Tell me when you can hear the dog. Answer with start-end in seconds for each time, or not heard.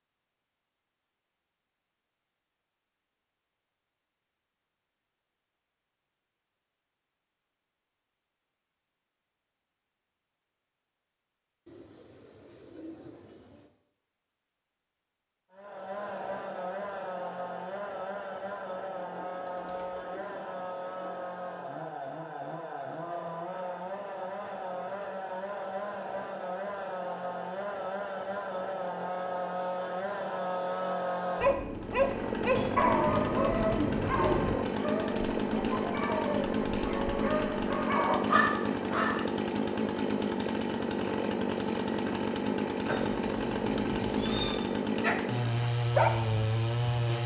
31.4-39.2, 45.0-47.1.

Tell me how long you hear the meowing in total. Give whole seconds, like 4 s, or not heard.
2 s.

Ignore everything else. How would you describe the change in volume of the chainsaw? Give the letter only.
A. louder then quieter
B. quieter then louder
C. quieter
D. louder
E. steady
D.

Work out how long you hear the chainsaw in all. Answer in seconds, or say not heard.
32 s.